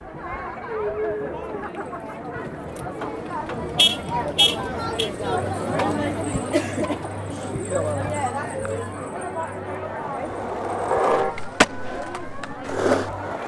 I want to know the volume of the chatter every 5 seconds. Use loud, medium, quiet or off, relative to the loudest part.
loud, loud, medium.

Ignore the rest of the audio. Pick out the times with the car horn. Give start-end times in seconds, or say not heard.
3.0-5.1, 10.9-11.4.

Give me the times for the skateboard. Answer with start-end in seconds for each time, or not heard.
9.7-13.4.